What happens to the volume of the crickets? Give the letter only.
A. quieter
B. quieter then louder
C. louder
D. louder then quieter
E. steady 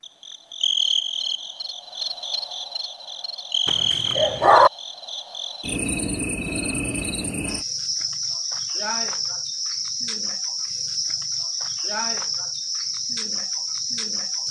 E.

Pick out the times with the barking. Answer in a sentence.
You can hear the barking from 3.6 to 4.7 s.